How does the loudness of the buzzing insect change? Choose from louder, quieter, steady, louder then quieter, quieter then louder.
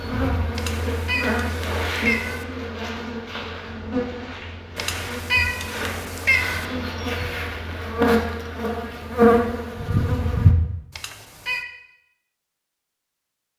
quieter then louder.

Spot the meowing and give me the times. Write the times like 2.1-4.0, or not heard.
0.6-2.5, 4.8-6.7, 10.9-11.7.